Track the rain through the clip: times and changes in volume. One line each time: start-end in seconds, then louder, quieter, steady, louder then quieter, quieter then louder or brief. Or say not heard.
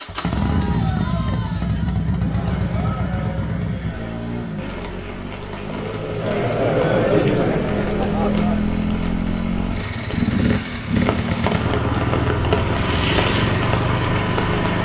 4.5-14.8 louder.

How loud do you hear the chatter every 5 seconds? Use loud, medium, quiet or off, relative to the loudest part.
quiet, loud, off.